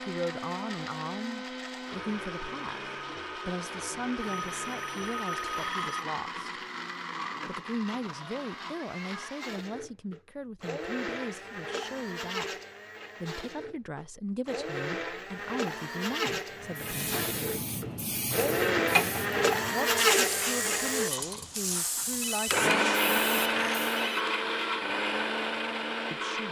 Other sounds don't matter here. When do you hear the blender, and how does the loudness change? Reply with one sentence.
The blender can be heard from 0.0 to 26.4 s, getting louder.